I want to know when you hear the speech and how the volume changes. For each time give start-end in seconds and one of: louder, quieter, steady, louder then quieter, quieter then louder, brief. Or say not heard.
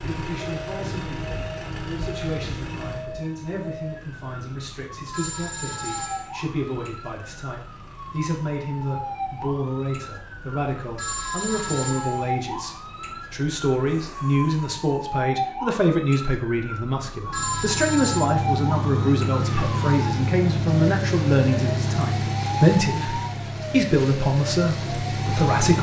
0.0-25.7 louder.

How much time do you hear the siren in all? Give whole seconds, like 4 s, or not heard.
26 s.